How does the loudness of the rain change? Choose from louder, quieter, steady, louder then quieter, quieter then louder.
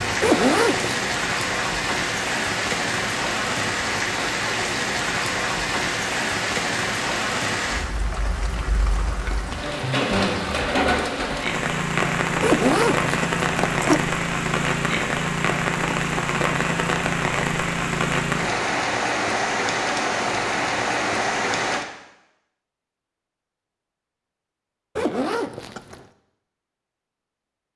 steady.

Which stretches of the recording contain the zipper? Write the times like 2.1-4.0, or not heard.
0.2-1.0, 12.4-14.1, 24.9-26.1.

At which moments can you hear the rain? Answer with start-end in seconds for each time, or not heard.
0.0-21.9.